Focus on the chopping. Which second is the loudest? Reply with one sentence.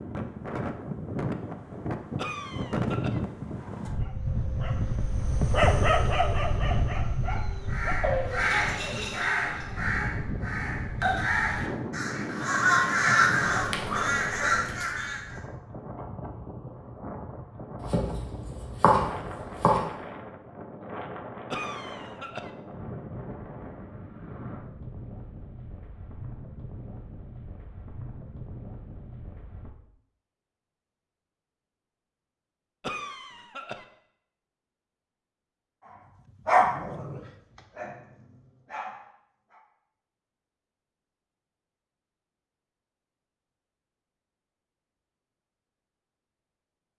The loudest moment of the chopping is at 19 seconds.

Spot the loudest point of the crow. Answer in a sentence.
The volume of the crow peaks at 13 seconds.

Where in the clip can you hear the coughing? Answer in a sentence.
The coughing can be heard from 2.1 to 3.2 s, from 21.5 to 22.5 s and from 32.8 to 33.9 s.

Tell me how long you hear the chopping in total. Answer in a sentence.
You can hear the chopping for 2 seconds altogether.